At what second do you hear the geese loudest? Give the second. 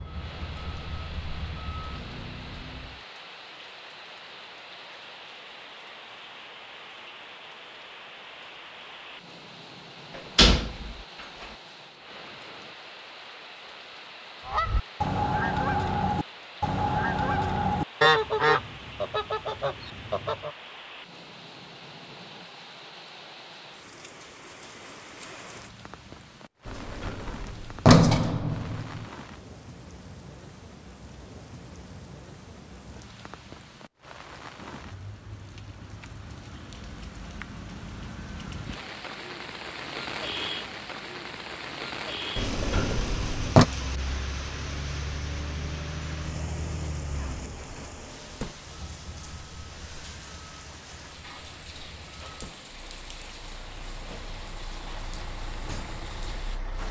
18 s.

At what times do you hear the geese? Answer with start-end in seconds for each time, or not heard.
14.4-20.5.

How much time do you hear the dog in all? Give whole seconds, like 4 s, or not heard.
not heard.